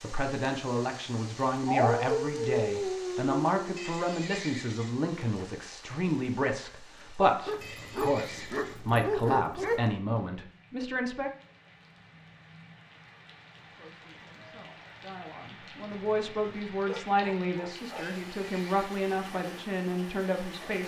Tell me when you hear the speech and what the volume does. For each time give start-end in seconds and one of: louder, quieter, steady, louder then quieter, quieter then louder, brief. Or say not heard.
0.0-11.3 steady
13.6-20.8 louder.